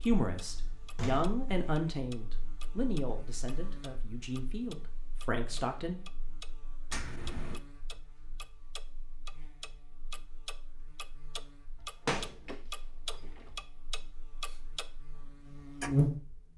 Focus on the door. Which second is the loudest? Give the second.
12 s.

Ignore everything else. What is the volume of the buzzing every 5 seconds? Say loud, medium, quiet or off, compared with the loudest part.
quiet, quiet, quiet, loud.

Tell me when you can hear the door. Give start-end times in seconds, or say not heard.
0.6-1.7, 6.9-7.6, 11.8-13.6.